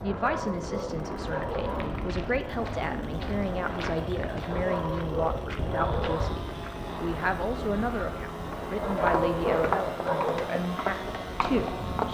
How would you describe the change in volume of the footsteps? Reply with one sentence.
The volume of the footsteps goes up.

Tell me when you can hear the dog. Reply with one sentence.
You can hear the dog from 0.0 to 1.9 s, from 4.4 to 6.3 s and from 8.8 to 10.3 s.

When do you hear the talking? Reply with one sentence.
You can hear the talking from 0.0 to 12.1 s.